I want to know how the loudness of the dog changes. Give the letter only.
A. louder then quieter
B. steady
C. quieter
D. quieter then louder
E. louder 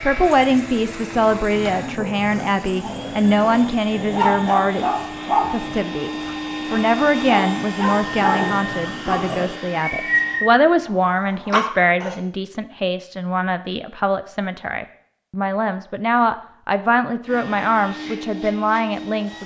E.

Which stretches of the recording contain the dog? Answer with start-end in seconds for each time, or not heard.
0.2-12.2.